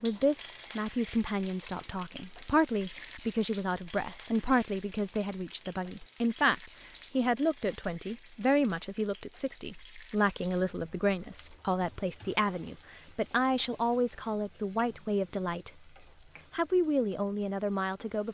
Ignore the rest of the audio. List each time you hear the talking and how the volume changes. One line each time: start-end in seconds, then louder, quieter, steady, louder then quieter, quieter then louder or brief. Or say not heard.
0.0-15.7 steady
16.5-18.2 brief.